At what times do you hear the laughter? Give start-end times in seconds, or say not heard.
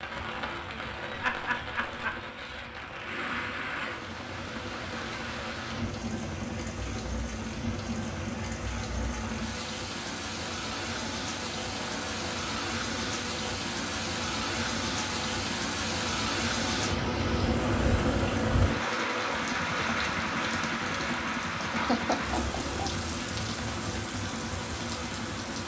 1.1-2.2, 21.7-23.1.